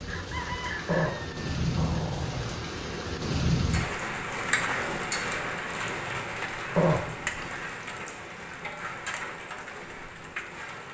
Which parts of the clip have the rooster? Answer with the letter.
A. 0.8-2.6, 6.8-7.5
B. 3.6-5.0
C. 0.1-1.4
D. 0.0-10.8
C.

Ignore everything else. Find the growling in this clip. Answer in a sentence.
The growling can be heard from 0.8 to 2.6 s and from 6.8 to 7.5 s.